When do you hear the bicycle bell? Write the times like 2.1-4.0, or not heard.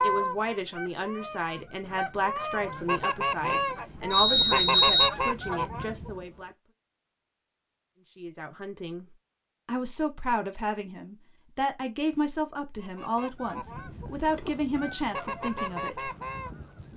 4.1-5.1.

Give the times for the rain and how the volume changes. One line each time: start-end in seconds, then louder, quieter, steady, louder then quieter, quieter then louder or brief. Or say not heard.
not heard.